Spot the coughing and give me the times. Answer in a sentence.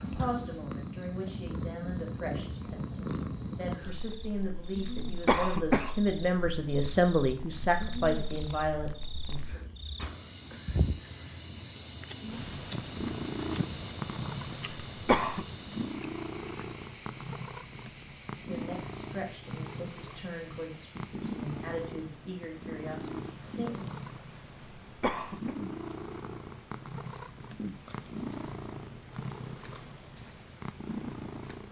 You can hear the coughing from 4.8 to 6.1 s, from 14.9 to 15.4 s and from 24.9 to 25.6 s.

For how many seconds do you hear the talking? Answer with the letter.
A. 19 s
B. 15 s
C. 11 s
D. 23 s
B.